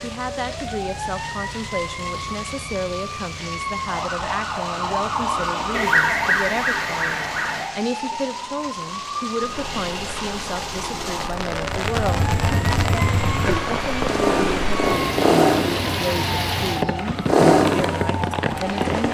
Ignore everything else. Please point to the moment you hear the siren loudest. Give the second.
6 s.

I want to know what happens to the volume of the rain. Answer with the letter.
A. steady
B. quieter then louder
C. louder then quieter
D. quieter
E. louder
E.